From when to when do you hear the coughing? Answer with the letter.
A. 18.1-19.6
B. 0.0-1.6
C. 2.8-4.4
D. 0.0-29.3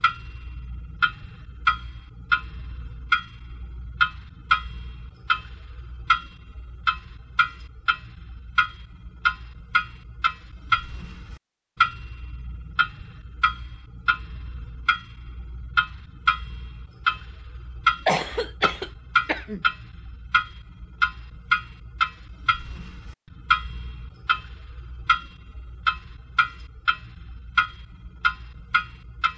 A.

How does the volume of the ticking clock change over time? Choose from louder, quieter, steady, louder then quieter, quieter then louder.
steady.